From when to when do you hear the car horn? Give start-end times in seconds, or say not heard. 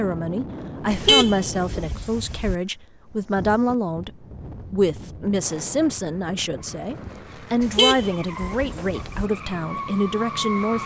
0.9-2.5, 7.6-9.2.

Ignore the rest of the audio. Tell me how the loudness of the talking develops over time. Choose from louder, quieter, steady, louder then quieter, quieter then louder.
steady.